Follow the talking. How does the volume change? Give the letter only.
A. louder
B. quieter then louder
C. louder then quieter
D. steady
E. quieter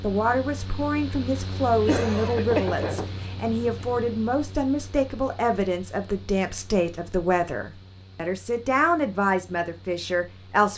D.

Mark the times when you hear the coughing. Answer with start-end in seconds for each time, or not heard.
1.9-3.0.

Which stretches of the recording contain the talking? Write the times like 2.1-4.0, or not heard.
0.0-10.7.